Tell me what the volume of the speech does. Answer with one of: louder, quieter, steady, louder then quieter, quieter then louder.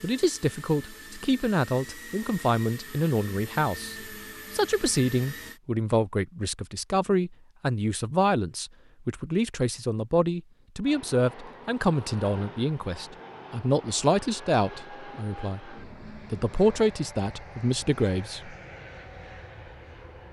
steady.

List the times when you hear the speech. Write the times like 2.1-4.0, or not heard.
0.0-18.6.